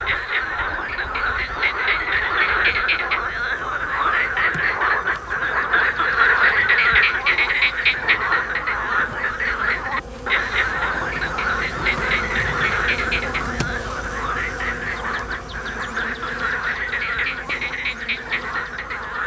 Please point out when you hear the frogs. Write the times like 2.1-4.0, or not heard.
0.0-19.2.